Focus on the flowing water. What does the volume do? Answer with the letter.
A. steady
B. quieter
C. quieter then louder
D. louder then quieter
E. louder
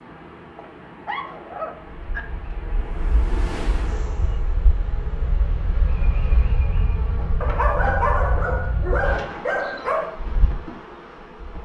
D.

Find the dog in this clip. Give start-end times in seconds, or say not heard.
0.6-2.2, 7.4-10.2.